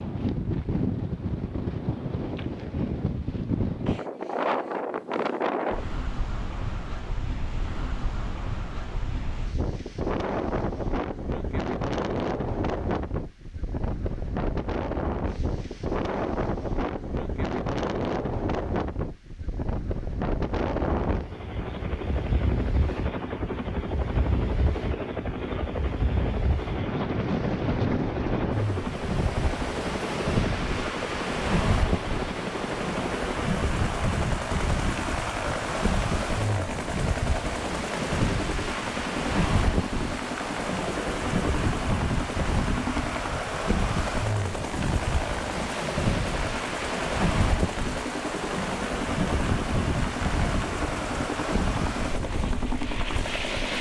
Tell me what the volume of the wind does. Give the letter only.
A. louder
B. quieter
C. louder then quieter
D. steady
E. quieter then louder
D.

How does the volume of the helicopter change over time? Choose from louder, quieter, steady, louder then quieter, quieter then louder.
steady.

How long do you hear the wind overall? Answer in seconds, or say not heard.
54 s.